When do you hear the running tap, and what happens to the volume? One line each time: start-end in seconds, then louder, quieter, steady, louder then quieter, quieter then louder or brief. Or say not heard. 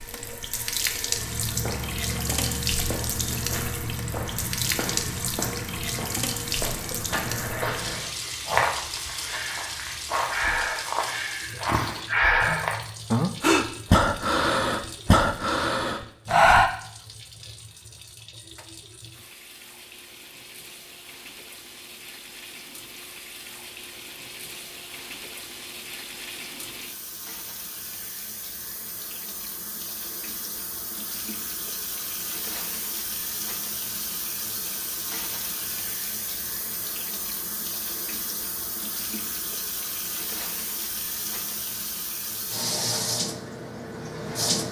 0.0-44.6 quieter then louder.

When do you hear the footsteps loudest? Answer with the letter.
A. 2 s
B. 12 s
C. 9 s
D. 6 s
C.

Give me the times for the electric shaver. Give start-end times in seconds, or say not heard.
not heard.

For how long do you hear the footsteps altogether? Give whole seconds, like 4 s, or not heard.
12 s.